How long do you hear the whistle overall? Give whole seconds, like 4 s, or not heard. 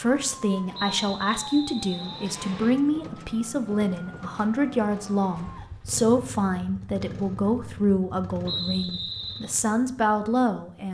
3 s.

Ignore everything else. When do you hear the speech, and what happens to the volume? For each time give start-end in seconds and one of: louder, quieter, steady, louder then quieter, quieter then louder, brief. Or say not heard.
0.0-10.9 steady.